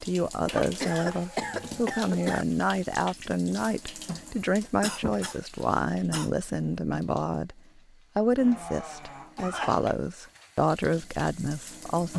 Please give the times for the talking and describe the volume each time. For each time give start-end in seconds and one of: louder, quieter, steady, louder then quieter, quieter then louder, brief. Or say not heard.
0.0-12.1 steady.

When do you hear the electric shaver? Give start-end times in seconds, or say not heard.
not heard.